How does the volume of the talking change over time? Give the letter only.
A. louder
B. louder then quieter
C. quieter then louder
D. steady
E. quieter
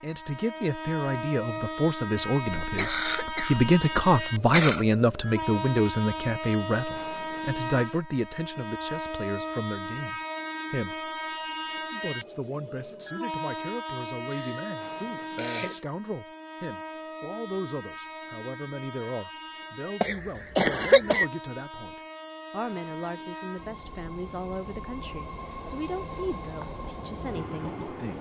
E.